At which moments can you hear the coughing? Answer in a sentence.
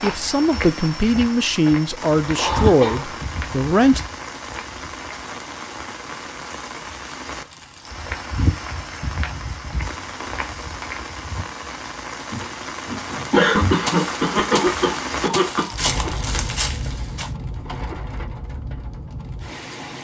You can hear the coughing from 2.4 to 3.1 s and from 13.3 to 15.7 s.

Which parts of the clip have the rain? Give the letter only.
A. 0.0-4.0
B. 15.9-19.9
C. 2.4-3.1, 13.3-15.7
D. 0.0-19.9
D.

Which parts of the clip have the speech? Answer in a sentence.
The speech can be heard from 0.0 to 4.0 s.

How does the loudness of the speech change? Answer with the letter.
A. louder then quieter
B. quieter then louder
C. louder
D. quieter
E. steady
D.